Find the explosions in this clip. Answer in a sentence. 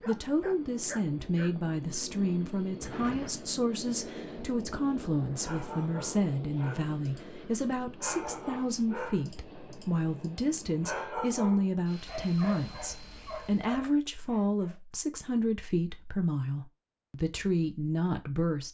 The explosions can be heard from 2.8 to 3.5 s.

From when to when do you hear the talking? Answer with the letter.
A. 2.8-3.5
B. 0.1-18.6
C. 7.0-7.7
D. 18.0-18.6
B.